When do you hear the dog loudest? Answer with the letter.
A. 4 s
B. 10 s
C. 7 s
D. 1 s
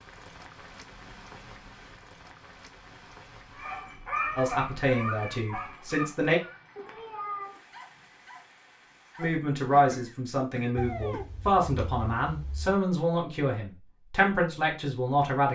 A.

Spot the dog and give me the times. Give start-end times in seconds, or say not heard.
3.5-9.3.